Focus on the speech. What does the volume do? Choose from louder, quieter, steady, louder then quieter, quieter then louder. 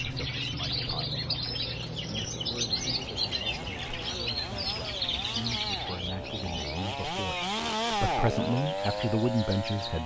louder.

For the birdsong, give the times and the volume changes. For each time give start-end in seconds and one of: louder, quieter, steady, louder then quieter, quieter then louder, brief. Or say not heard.
0.0-10.0 quieter.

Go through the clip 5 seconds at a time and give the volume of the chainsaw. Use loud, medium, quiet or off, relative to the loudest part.
medium, loud.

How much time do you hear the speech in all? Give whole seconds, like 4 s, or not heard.
10 s.